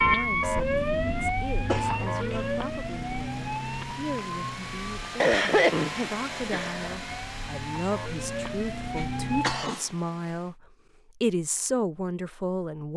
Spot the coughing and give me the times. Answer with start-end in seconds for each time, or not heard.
1.6-2.5, 5.2-7.0, 8.9-9.8.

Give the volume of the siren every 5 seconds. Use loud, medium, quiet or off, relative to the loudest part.
loud, medium, off.